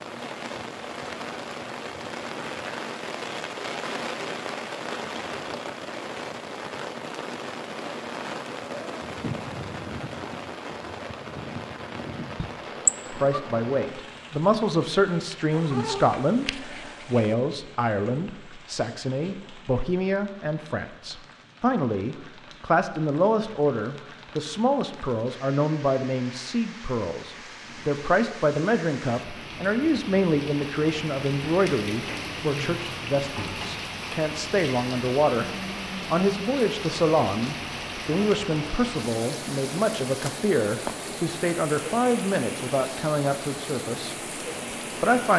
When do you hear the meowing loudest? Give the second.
13 s.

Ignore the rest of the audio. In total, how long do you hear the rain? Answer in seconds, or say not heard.
45 s.